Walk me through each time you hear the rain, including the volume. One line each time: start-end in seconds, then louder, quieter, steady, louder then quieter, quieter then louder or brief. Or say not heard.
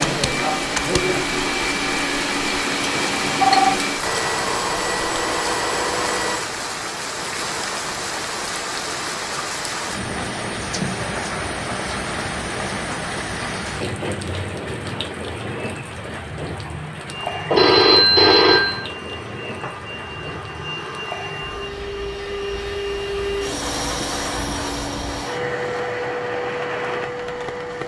0.0-27.8 quieter.